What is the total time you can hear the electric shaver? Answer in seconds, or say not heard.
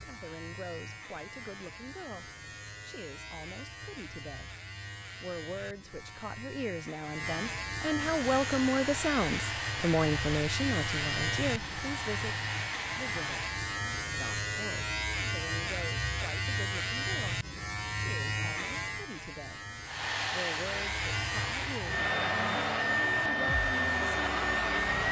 25 s.